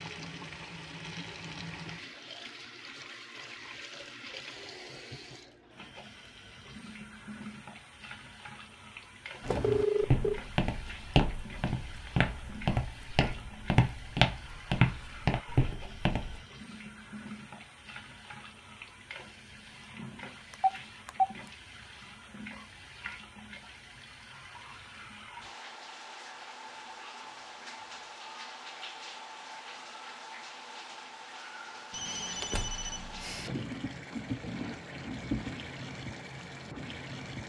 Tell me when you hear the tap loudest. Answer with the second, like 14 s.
35 s.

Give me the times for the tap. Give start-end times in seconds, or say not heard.
0.0-37.4.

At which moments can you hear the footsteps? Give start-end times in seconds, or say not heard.
9.4-16.4.